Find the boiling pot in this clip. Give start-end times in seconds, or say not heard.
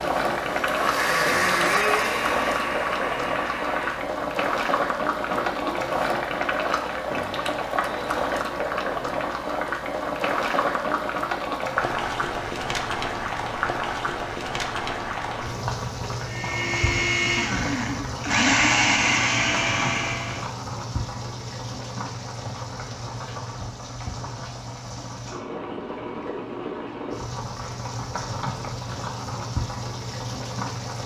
0.0-31.0.